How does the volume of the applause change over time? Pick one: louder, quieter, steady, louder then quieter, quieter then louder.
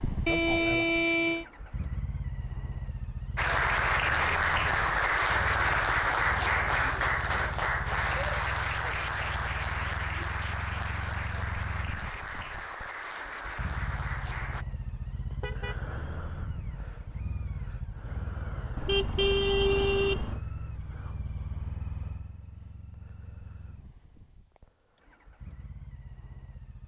quieter.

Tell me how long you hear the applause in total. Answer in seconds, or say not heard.
11 s.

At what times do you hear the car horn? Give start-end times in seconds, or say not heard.
0.2-1.4, 15.4-15.8, 18.8-20.4.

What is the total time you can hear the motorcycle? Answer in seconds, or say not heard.
27 s.